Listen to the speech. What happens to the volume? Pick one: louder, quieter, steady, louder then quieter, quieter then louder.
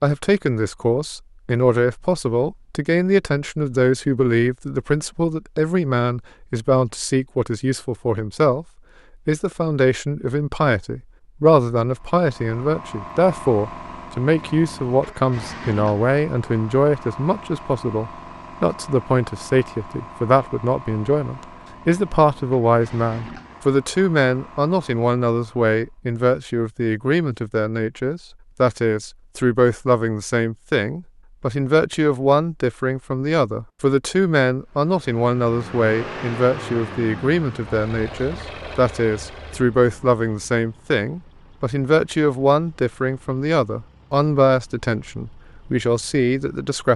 steady.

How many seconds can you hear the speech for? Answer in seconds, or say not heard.
46 s.